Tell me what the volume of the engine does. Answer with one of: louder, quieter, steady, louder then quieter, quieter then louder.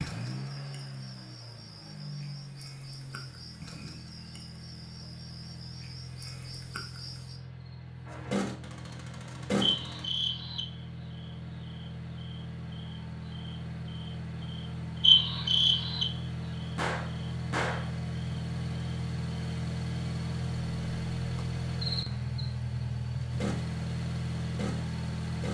louder.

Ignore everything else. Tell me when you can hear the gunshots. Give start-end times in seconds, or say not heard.
8.1-10.1, 16.8-17.9.